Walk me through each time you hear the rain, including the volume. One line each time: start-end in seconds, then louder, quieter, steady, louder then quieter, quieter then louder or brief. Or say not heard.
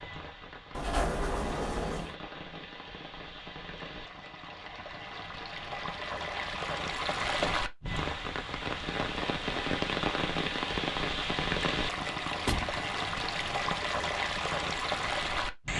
0.0-15.7 louder.